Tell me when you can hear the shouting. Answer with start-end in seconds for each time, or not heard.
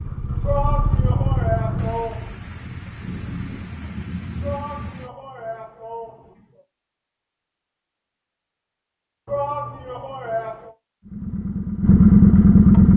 0.4-2.4, 4.4-6.6, 9.2-10.7.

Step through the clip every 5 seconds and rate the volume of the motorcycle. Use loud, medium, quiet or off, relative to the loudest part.
quiet, off, loud.